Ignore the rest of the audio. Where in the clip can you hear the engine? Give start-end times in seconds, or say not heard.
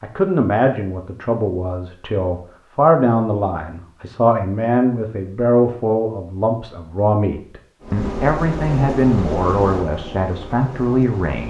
7.8-11.4.